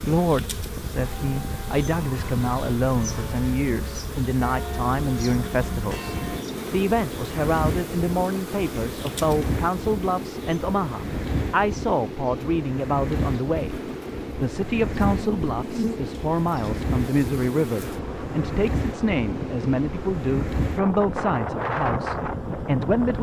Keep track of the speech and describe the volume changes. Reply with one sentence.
The loudness of the speech stays about the same.